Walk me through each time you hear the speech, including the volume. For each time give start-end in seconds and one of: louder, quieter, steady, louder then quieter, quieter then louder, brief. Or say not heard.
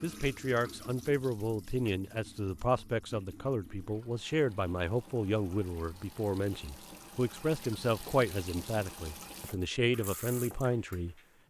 0.0-11.4 steady.